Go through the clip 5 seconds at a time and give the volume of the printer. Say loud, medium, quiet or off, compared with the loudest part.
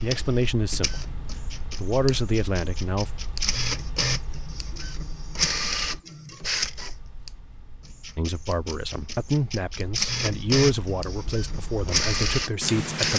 medium, loud, loud.